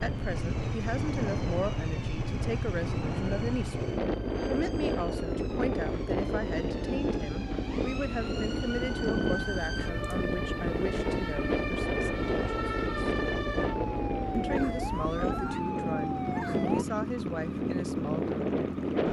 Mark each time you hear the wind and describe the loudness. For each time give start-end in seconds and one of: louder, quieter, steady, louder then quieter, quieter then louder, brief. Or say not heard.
0.0-19.0 steady.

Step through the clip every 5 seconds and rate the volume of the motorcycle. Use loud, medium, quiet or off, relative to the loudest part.
loud, medium, medium, loud.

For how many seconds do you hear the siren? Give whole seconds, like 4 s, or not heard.
17 s.